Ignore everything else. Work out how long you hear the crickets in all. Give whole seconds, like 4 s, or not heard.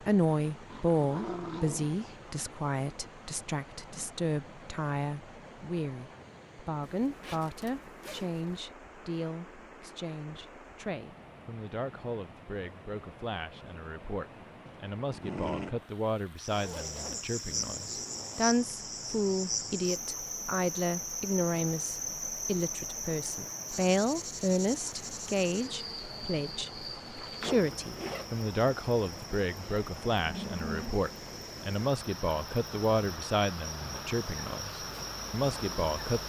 20 s.